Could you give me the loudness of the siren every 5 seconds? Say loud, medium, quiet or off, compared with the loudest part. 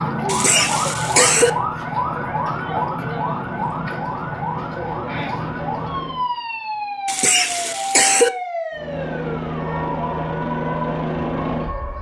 loud, loud, medium.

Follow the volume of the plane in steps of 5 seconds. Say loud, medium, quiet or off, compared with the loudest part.
medium, loud, loud.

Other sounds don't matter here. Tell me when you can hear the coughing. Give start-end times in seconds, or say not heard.
0.2-1.5, 7.0-8.3.